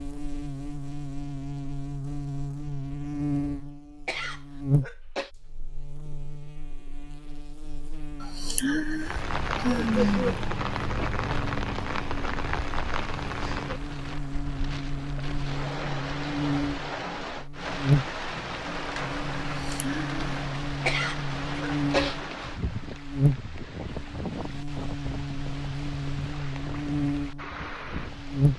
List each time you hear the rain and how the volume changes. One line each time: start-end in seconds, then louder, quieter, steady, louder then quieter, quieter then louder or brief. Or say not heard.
9.0-28.5 quieter.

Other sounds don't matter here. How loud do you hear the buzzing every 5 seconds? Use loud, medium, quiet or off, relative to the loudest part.
loud, quiet, medium, loud, loud, loud.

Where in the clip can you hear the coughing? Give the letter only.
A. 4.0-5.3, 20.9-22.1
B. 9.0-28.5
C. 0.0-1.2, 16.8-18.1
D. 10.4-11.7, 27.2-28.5
A.